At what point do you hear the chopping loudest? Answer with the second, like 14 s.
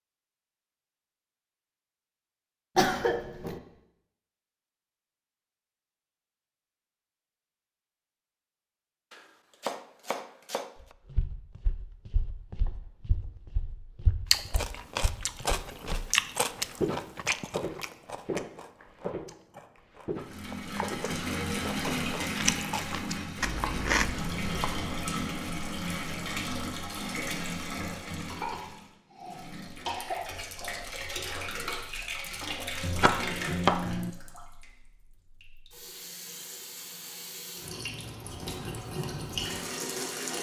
34 s.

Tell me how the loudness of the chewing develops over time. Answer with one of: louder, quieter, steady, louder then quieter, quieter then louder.
quieter then louder.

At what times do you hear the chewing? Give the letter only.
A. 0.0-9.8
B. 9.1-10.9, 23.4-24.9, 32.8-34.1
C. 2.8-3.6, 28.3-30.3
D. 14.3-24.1
D.